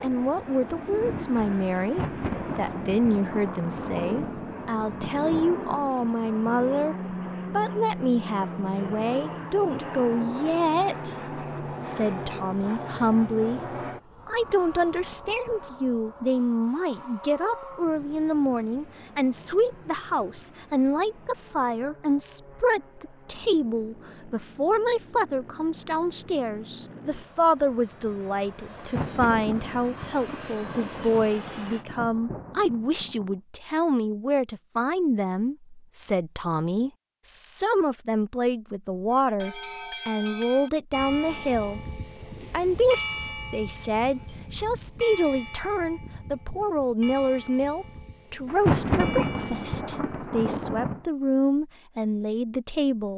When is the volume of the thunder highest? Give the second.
49 s.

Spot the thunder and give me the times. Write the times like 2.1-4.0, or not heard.
1.8-6.5, 28.8-33.4, 48.5-51.0.